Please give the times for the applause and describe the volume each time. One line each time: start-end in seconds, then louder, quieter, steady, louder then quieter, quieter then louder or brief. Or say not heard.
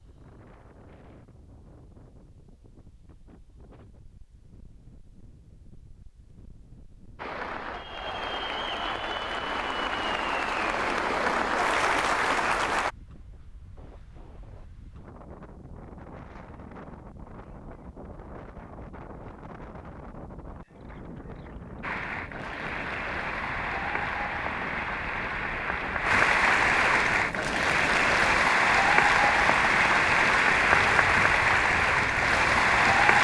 7.2-12.9 louder
21.8-33.1 louder.